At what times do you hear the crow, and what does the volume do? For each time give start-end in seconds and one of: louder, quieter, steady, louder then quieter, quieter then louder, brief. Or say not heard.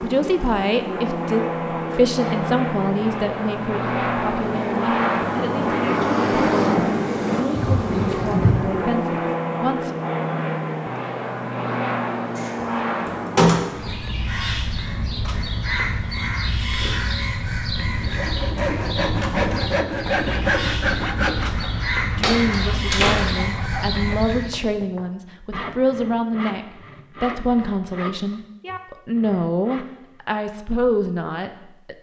13.8-24.5 steady.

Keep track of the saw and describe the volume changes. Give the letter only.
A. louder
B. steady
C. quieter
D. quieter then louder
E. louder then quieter
C.